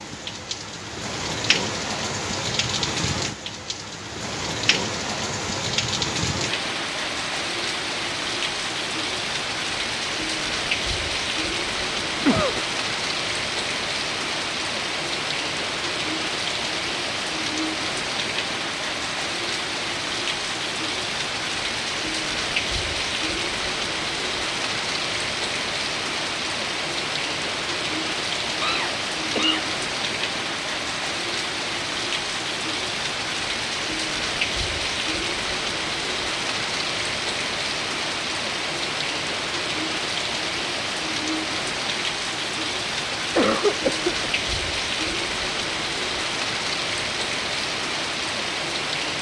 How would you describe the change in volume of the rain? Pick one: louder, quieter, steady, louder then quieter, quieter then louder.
steady.